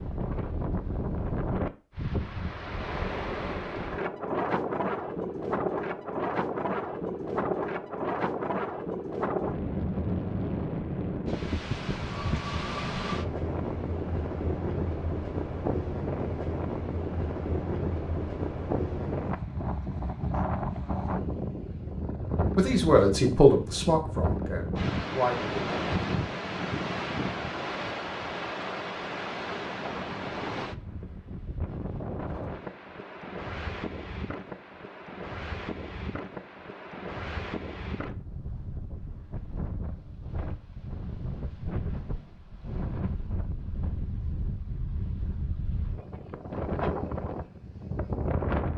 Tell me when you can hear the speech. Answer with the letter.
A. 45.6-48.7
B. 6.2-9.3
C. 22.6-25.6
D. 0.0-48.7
C.